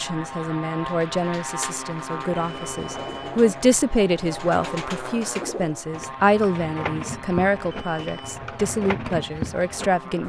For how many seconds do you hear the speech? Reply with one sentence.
The speech can be heard for 10 seconds in total.